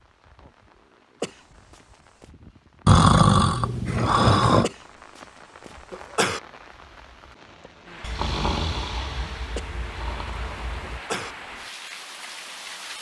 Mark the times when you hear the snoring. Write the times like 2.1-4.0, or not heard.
2.9-4.7, 8.0-11.0.